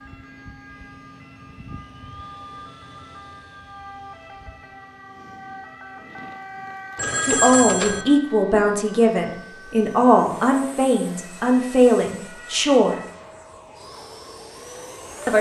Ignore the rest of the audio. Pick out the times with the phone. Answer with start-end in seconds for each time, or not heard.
7.0-8.1.